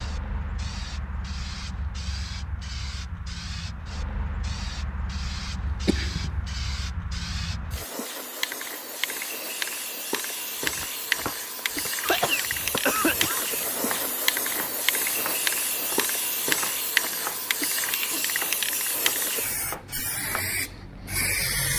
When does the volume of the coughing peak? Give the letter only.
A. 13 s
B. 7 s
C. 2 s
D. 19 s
A.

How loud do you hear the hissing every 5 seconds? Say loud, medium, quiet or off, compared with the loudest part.
medium, medium, loud, loud, loud.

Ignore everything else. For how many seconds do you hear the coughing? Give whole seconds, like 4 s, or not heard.
2 s.